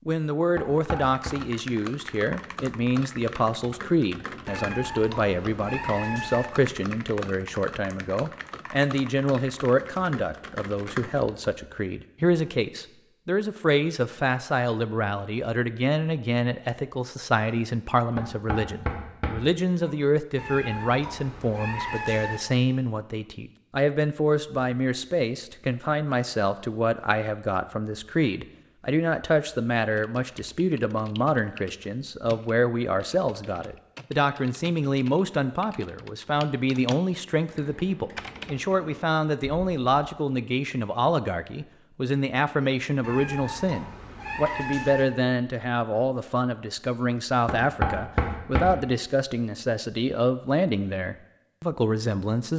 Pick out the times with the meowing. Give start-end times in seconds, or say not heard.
4.5-6.5, 20.4-22.4, 43.0-45.0.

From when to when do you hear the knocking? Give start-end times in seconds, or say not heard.
0.6-1.4, 18.1-19.9, 47.5-48.8.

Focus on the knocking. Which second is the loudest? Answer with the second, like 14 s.
48 s.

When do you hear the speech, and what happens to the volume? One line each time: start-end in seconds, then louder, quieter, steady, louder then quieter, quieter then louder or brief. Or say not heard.
0.1-52.5 steady.